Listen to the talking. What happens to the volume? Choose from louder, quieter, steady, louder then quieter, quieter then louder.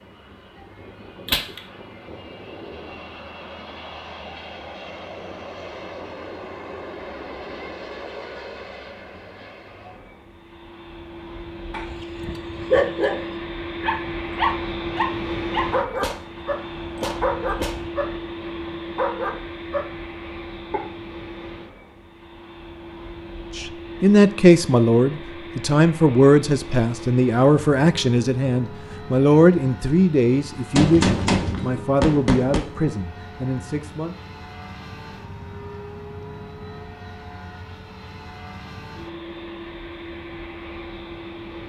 quieter.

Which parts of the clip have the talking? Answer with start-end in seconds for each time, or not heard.
23.6-34.1.